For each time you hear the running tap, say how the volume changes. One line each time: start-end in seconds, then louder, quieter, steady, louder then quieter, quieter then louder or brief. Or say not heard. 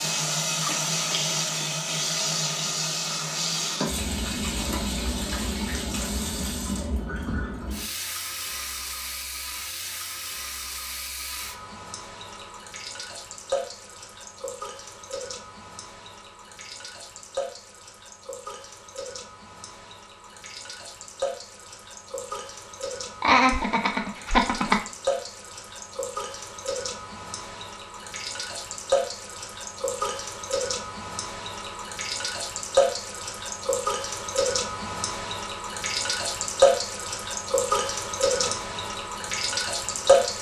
0.0-40.3 quieter then louder.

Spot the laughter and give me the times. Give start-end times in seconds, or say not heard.
23.2-24.8.